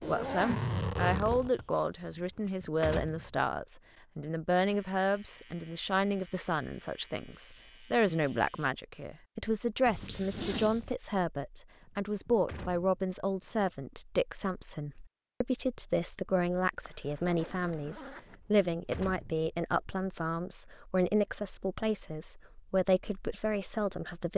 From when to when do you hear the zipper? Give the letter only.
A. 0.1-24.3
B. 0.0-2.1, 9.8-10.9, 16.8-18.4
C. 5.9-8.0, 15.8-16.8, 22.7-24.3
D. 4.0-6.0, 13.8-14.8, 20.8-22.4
B.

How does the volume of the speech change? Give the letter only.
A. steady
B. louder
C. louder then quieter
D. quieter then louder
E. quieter
A.